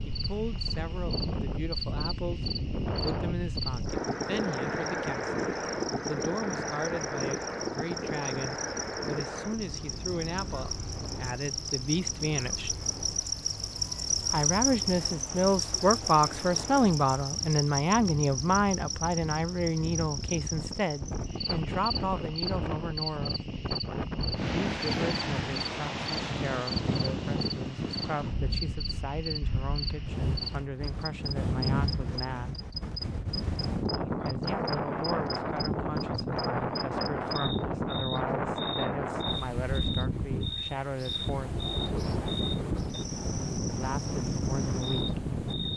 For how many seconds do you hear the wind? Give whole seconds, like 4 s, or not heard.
46 s.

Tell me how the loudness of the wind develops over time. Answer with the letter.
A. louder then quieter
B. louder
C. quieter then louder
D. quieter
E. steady
C.